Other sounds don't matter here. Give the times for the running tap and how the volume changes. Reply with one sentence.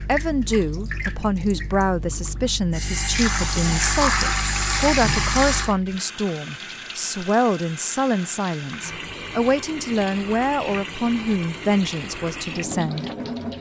You can hear the running tap from 0.0 to 13.5 s, getting louder then quieter.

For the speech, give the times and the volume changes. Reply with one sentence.
You can hear the speech from 0.0 to 13.1 s, at a steady volume.